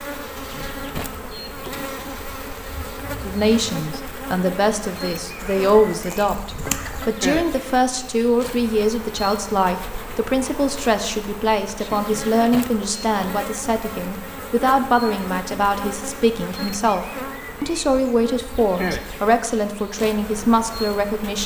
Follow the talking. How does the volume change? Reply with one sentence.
The loudness of the talking stays about the same.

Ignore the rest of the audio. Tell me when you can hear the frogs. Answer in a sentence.
You can't hear the frogs here.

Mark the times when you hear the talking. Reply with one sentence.
You can hear the talking from 3.2 to 21.4 s.